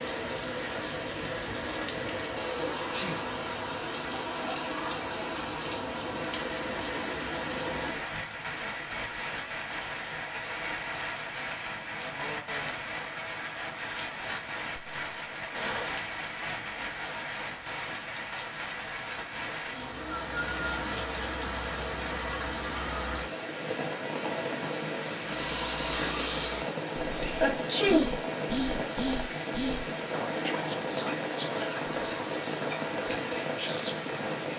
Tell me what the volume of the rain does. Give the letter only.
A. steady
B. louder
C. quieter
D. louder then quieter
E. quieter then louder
A.